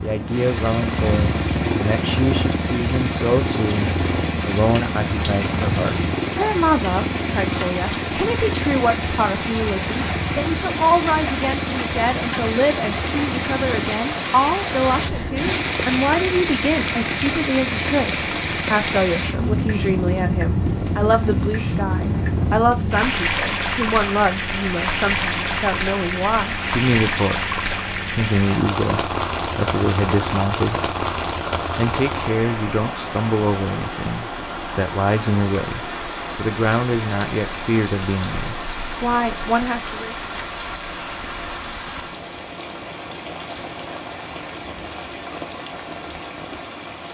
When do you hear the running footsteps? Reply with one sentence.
The running footsteps can't be heard in this clip.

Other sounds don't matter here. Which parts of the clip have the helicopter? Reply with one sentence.
The helicopter can be heard from 0.0 to 22.6 s.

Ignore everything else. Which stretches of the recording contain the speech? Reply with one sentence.
The speech can be heard from 0.0 to 30.9 s and from 31.6 to 40.1 s.